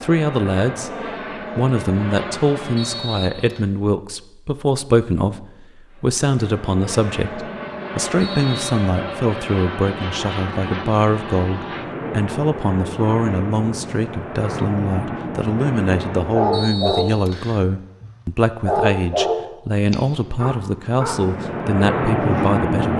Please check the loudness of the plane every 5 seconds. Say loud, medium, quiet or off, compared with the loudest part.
medium, medium, medium, medium, loud.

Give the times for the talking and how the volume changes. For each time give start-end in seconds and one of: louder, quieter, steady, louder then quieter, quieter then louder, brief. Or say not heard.
0.0-22.9 steady.